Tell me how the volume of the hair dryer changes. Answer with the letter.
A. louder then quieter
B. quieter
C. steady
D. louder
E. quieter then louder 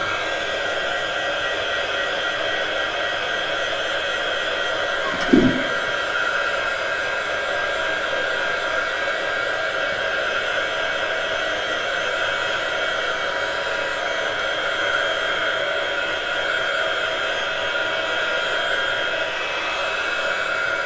C.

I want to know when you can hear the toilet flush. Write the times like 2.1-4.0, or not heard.
5.0-5.5.